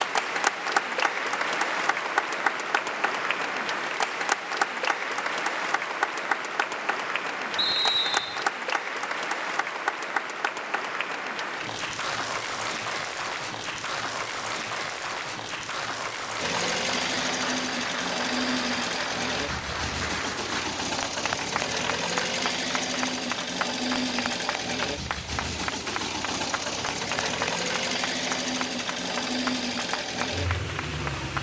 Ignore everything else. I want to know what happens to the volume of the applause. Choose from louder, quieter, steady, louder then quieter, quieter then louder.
quieter.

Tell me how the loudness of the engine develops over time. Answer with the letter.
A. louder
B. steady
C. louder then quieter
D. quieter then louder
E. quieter
B.